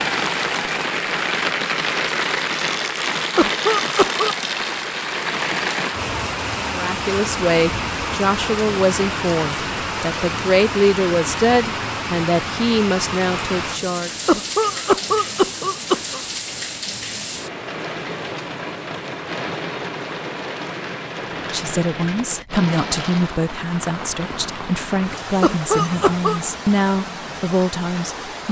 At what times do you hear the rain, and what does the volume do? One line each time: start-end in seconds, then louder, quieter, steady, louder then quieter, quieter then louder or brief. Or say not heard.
0.0-28.4 quieter.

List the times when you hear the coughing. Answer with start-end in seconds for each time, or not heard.
3.4-4.3, 14.2-16.2, 25.4-26.4.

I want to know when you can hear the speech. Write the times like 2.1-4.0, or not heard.
6.7-14.1, 21.5-28.4.